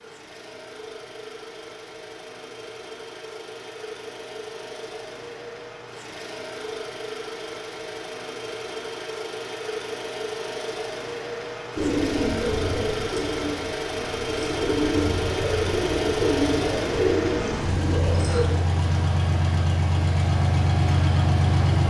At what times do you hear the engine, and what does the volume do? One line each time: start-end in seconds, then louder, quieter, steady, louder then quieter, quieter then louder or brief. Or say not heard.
0.0-21.8 louder.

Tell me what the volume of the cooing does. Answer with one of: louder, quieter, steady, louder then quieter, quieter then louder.
quieter then louder.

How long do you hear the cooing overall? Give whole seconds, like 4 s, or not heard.
7 s.